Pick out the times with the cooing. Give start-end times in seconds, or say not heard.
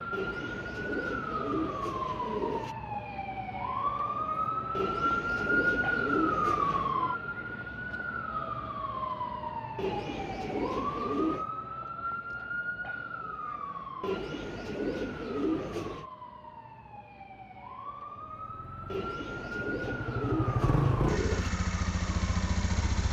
0.1-2.8, 4.8-7.0, 9.8-11.4, 14.0-16.1, 18.9-21.5.